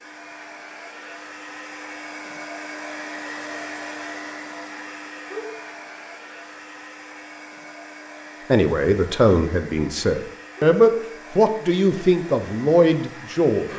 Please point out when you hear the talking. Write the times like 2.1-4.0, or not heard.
8.5-13.7.